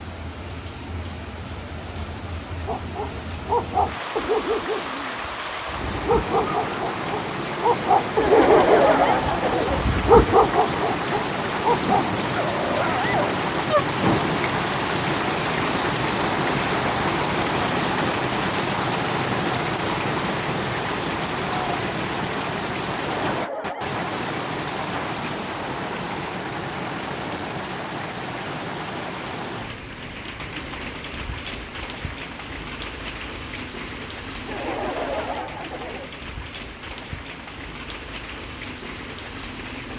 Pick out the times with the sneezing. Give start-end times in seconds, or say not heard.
not heard.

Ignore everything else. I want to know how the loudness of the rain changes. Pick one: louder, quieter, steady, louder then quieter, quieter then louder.
louder then quieter.